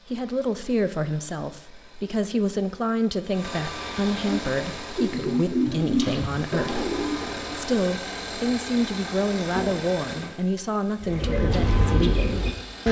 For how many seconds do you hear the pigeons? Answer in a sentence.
You can hear the pigeons for 5 seconds altogether.